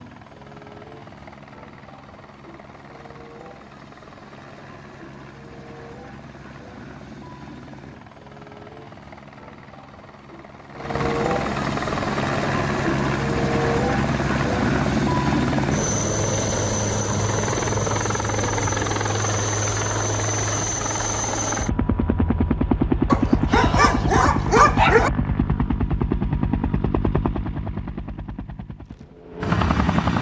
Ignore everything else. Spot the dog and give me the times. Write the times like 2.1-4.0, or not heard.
23.1-25.1.